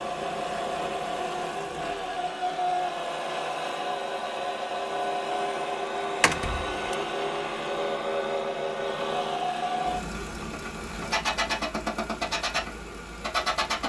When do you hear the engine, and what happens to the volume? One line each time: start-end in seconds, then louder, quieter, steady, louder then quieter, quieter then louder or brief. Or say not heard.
0.0-13.8 steady.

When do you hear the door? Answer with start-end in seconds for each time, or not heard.
6.2-7.0.